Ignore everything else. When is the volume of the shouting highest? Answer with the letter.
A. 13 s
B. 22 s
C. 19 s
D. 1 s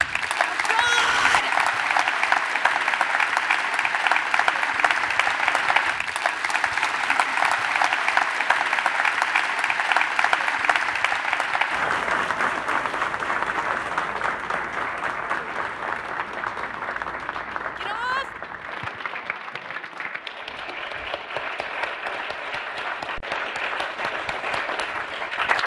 D.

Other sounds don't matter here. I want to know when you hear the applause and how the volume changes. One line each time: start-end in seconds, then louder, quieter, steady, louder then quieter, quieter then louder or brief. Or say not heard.
0.0-25.6 quieter.